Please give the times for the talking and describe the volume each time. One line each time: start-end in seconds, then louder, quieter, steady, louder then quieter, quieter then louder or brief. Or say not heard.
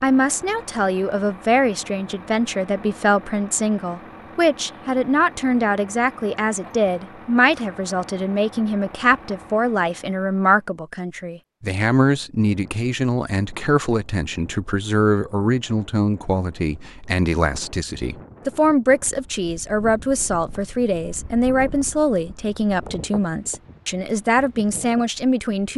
0.0-25.7 steady.